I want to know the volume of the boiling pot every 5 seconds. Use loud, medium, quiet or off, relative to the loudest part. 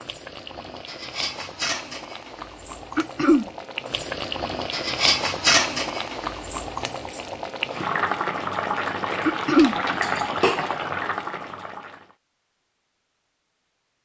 medium, loud, loud.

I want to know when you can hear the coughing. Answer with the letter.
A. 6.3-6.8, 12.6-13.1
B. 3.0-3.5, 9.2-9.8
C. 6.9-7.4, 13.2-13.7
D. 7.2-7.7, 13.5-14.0
B.